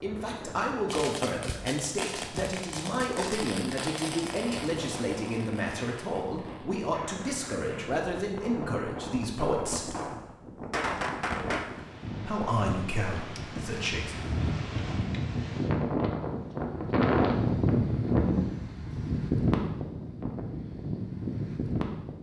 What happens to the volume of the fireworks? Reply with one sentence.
The volume of the fireworks goes down, then up.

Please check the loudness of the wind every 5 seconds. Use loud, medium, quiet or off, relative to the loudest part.
quiet, quiet, medium, loud, medium.